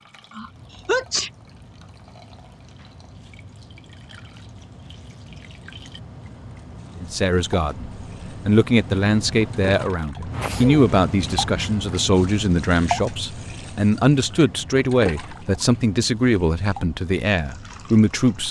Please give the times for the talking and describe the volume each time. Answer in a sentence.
You can hear the talking from 7.0 to 18.4 s, at a steady volume.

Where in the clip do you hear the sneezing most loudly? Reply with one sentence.
The loudest moment of the sneezing is at 1 second.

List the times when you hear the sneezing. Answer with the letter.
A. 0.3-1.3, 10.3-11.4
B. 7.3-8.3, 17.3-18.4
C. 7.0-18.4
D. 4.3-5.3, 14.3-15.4
A.